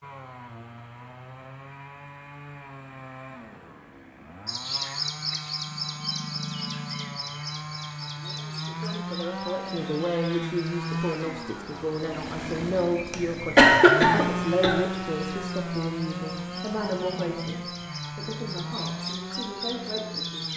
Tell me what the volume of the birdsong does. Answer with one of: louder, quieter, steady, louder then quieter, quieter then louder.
quieter then louder.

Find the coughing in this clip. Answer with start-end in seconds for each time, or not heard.
13.1-14.8.